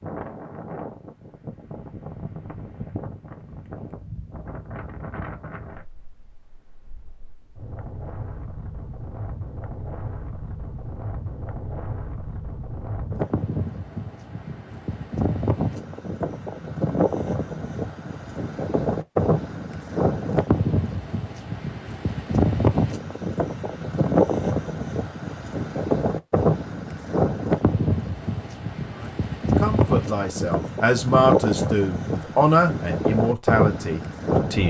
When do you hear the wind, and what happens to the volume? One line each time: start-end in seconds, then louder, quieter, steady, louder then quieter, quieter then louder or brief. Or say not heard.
0.0-34.6 louder.